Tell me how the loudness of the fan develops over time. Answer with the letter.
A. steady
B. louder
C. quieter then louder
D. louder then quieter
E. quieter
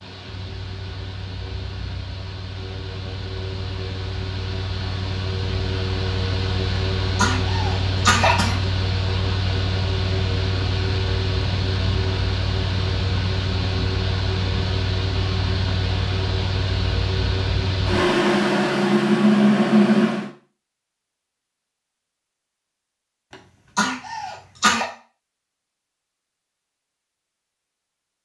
B.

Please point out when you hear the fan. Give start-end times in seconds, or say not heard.
0.0-20.3.